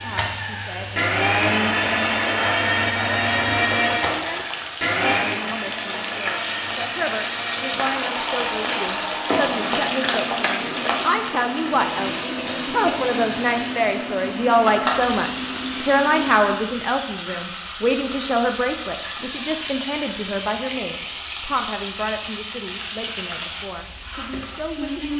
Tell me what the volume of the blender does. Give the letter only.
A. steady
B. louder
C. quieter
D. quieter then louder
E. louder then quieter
C.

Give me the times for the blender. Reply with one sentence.
The blender can be heard from 0.0 to 16.6 s.